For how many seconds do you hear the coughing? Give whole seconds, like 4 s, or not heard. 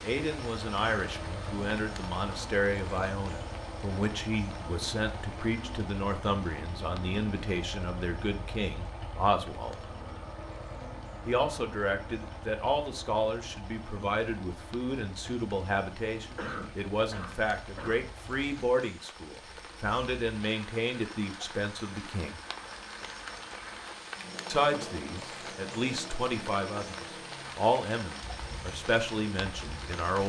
2 s.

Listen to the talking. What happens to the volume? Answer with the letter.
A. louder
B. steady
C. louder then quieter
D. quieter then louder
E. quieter
B.